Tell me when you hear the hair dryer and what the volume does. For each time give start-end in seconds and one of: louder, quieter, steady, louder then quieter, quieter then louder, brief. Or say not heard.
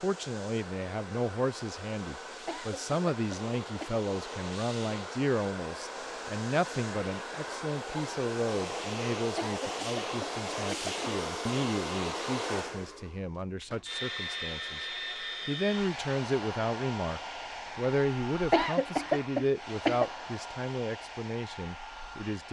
0.0-22.4 louder then quieter.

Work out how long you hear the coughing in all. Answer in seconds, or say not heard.
5 s.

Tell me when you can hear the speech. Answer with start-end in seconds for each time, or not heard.
0.0-14.8, 15.4-22.4.